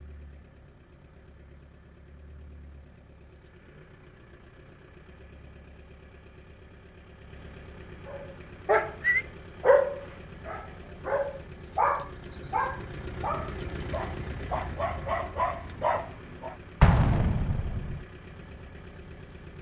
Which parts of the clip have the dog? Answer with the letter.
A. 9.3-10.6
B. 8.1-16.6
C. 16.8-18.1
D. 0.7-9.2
B.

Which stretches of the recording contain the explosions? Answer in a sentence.
The explosions can be heard from 16.8 to 18.1 s.